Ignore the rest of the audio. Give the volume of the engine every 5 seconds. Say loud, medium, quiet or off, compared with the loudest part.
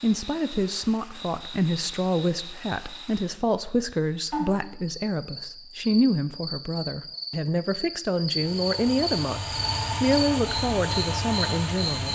off, loud, loud.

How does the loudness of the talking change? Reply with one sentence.
The volume of the talking stays about the same.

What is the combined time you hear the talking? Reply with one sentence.
You can hear the talking for 12 seconds altogether.